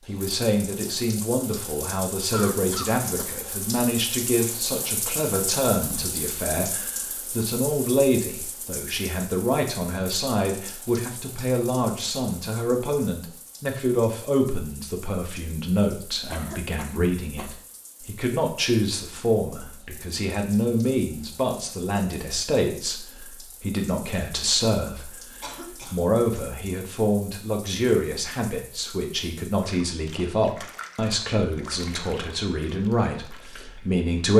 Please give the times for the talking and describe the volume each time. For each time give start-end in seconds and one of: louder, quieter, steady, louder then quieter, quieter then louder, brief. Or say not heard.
0.1-34.3 steady.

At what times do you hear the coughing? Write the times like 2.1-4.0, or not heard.
2.3-3.4, 16.3-17.6, 24.9-26.0.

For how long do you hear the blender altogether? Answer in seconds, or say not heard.
not heard.